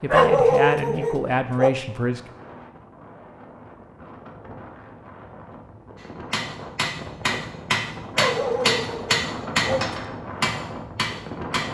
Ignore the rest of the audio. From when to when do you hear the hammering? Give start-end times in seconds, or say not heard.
6.0-11.6.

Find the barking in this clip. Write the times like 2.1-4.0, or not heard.
0.1-1.7, 8.2-10.0.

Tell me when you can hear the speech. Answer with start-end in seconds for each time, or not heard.
0.0-2.2.